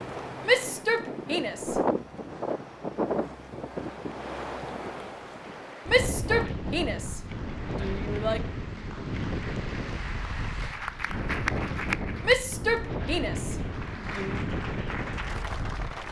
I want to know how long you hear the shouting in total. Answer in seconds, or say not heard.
6 s.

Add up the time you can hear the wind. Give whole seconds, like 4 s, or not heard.
16 s.